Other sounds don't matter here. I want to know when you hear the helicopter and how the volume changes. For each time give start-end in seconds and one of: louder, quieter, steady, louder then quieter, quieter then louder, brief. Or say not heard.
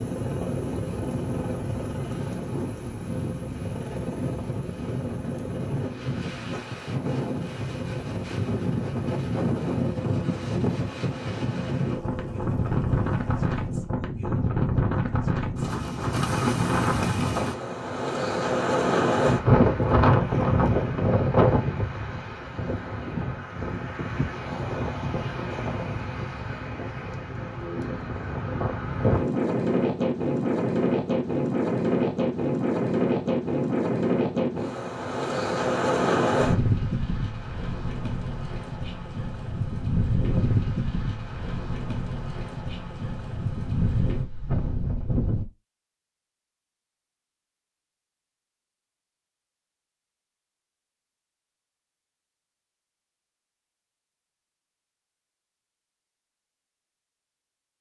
0.0-13.9 quieter.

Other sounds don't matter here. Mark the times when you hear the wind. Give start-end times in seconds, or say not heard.
0.0-45.5.